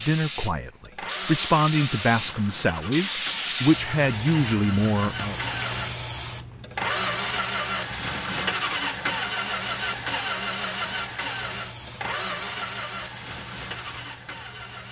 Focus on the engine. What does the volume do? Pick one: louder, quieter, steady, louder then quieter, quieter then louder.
louder then quieter.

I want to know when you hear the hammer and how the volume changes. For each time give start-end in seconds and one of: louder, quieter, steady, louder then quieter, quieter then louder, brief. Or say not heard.
not heard.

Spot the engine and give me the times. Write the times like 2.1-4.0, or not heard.
0.0-14.8.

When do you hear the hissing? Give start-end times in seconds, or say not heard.
0.0-14.8.